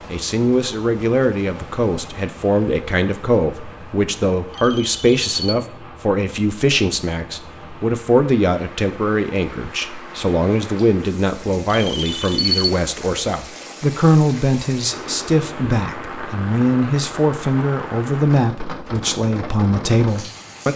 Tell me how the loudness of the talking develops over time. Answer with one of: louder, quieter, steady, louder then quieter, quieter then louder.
steady.